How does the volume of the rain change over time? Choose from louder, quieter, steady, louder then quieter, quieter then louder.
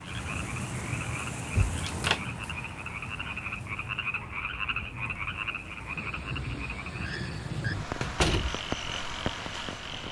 quieter then louder.